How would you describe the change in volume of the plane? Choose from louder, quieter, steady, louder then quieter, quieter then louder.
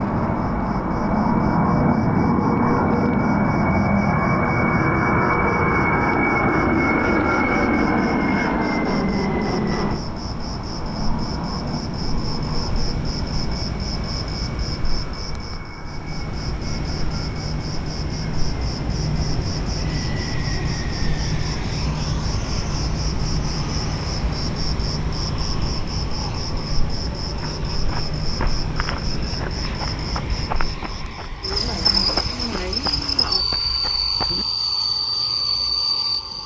quieter.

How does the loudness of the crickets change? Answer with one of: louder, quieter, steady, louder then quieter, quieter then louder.
louder.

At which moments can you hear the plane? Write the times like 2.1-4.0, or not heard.
0.0-36.4.